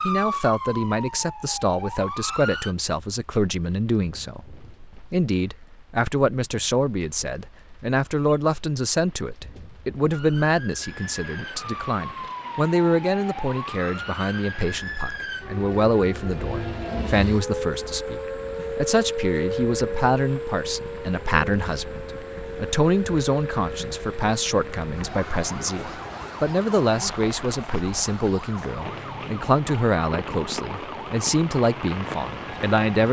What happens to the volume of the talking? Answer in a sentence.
The loudness of the talking stays about the same.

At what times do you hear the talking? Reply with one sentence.
You can hear the talking from 0.0 to 33.0 s.